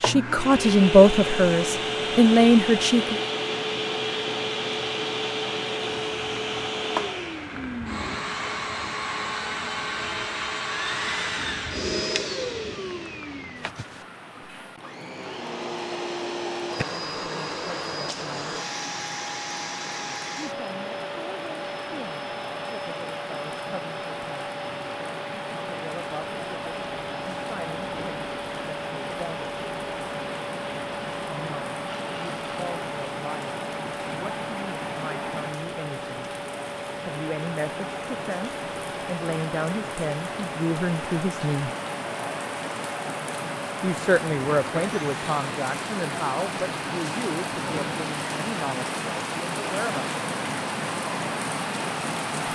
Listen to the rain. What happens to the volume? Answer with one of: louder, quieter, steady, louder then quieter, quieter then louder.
louder.